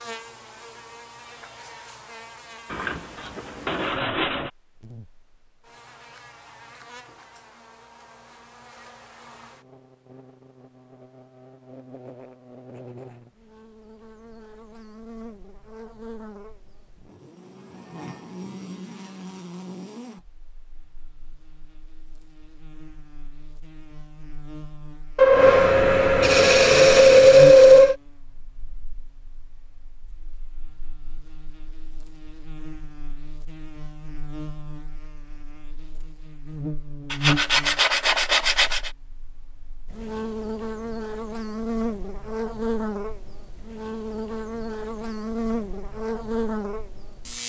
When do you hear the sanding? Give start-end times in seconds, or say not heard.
2.7-4.5, 25.1-27.9, 37.1-38.9.